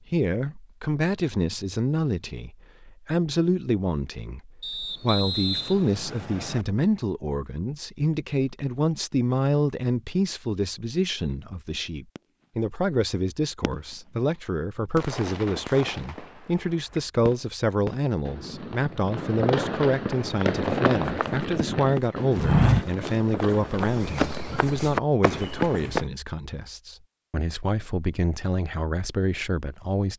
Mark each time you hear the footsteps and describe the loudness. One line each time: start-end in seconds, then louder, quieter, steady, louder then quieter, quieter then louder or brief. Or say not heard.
20.1-26.1 louder then quieter.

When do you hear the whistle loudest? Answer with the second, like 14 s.
5 s.